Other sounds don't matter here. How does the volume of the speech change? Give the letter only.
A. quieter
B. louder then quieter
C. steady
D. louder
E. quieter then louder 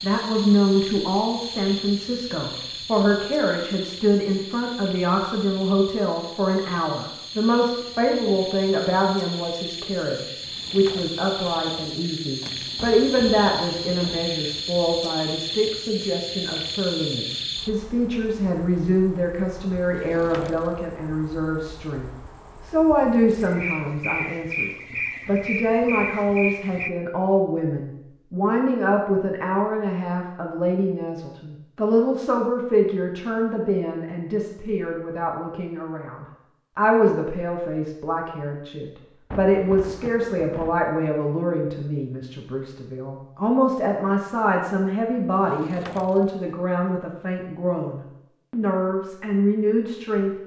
C.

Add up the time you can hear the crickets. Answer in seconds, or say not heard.
27 s.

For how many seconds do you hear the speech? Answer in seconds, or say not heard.
50 s.